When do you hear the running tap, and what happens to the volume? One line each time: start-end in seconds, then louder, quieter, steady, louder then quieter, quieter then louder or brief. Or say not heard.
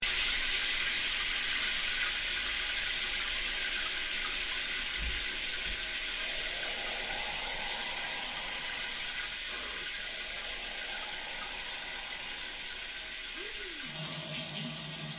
0.0-15.1 quieter.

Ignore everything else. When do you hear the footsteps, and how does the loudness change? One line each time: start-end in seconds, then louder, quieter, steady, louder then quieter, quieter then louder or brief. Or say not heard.
not heard.